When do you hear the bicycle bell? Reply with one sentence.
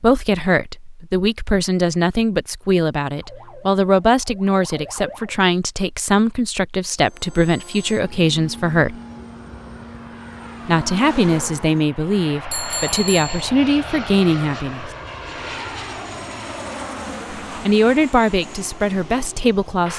The bicycle bell can be heard from 12.5 to 13.5 s.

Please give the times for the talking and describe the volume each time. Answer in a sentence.
The talking can be heard from 0.0 to 8.9 s, at a steady volume; from 10.7 to 14.9 s, getting quieter then louder; and briefly from 17.6 to 19.9 s.